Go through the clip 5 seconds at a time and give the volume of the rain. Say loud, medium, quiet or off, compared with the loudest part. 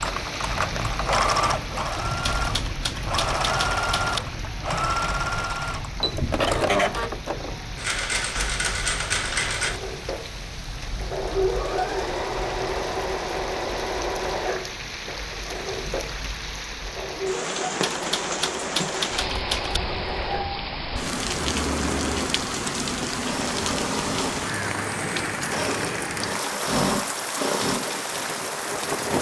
medium, medium, medium, loud, loud, loud.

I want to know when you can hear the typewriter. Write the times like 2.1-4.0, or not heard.
2.2-4.2, 17.8-19.8.